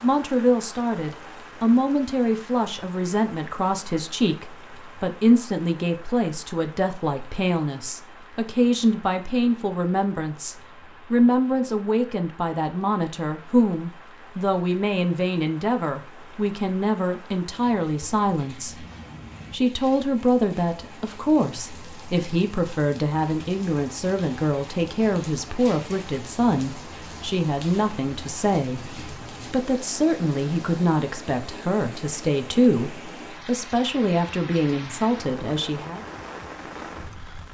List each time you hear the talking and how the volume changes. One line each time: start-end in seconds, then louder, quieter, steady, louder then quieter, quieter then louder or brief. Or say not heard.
0.0-18.9 steady
19.5-36.0 steady.